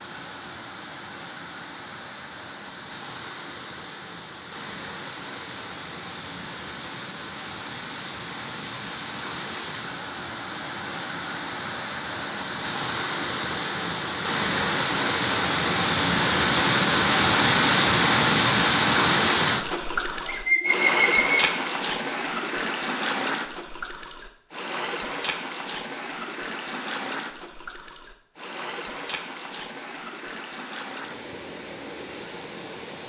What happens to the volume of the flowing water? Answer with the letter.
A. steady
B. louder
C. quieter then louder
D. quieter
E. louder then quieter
E.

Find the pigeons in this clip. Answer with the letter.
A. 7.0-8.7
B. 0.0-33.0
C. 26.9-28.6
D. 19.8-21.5
D.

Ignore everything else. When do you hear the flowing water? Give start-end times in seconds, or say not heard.
0.0-33.0.